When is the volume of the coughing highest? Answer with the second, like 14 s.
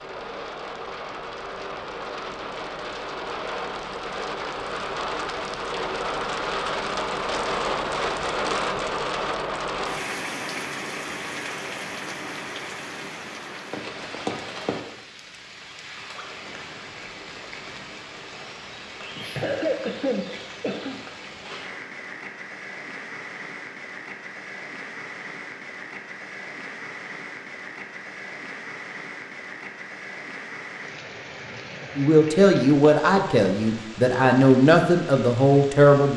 20 s.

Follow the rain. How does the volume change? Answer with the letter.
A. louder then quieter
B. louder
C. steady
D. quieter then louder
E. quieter
E.